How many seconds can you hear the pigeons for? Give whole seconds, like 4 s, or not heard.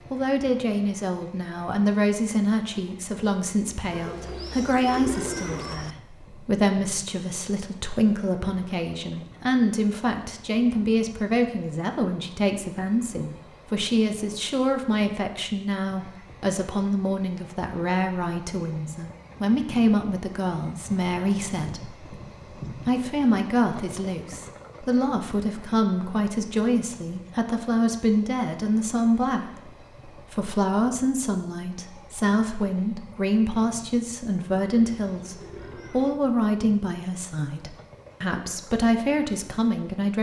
4 s.